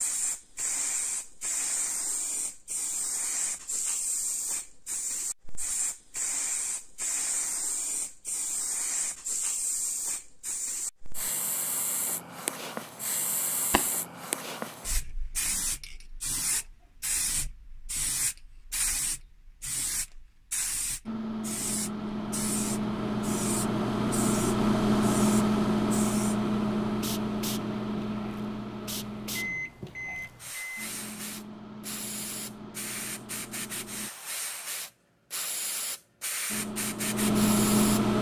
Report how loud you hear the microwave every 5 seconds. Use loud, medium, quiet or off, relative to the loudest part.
off, off, off, off, loud, loud, quiet, loud.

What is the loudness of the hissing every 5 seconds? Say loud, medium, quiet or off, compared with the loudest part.
loud, loud, loud, loud, medium, medium, medium, loud.